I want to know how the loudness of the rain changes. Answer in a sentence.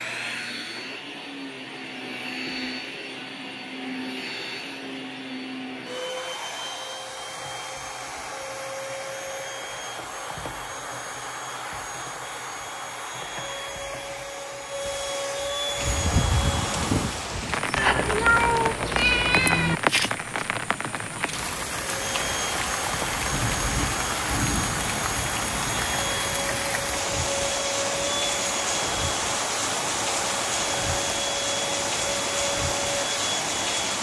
The loudness of the rain stays about the same.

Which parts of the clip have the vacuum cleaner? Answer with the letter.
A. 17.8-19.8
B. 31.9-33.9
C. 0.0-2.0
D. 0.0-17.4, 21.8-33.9
D.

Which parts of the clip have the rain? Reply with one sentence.
You can hear the rain from 15.8 to 33.9 s.